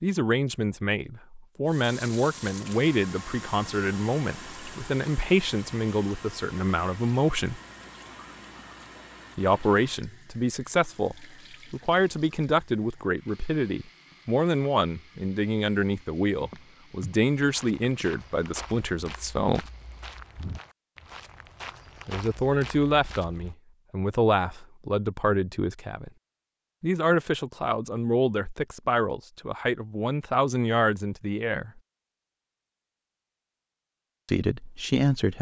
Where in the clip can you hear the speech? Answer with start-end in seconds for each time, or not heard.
0.0-7.6, 9.3-19.6, 22.1-26.1, 26.8-31.8, 34.2-35.3.